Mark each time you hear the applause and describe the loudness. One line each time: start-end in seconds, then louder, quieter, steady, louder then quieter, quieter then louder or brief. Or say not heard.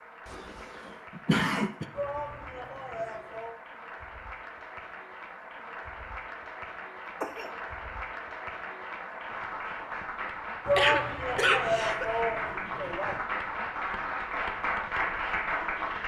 0.0-16.0 louder.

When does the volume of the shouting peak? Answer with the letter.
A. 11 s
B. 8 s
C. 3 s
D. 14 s
A.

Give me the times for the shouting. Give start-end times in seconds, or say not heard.
1.9-3.6, 10.7-13.2.